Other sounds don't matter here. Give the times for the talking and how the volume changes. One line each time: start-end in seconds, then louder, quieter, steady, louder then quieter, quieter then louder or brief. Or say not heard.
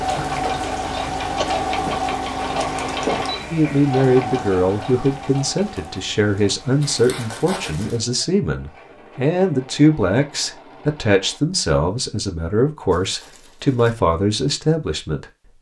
3.5-15.2 steady.